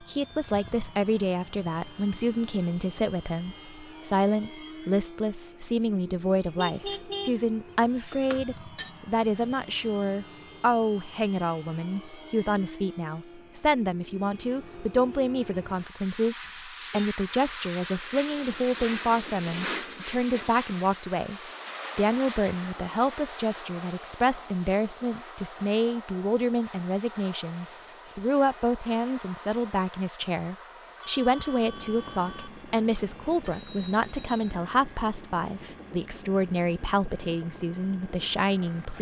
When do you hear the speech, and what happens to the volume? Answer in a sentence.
The speech can be heard from 0.0 to 38.9 s, at a steady volume.